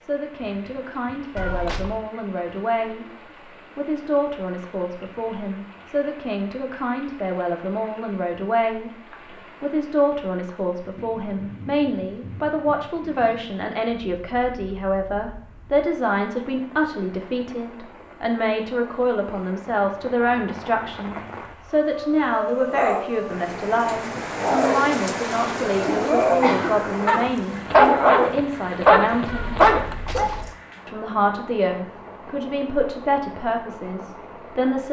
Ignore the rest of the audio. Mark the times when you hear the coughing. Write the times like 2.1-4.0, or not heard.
25.9-26.9.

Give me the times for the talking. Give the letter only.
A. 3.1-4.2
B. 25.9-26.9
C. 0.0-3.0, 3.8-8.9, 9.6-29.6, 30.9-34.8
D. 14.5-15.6
C.